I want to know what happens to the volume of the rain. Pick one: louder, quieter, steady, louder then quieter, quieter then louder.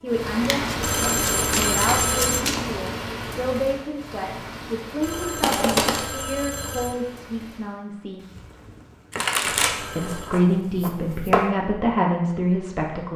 quieter.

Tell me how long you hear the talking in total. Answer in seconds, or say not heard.
11 s.